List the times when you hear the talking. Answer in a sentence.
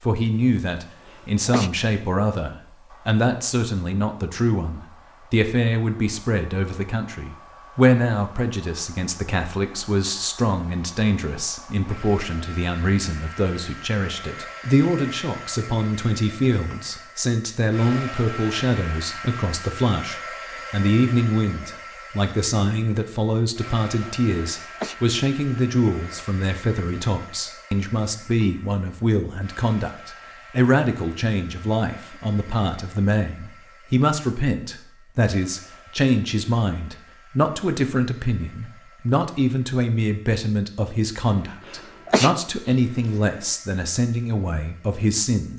The talking can be heard from 0.0 to 45.5 s.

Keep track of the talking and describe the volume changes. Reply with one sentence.
The loudness of the talking stays about the same.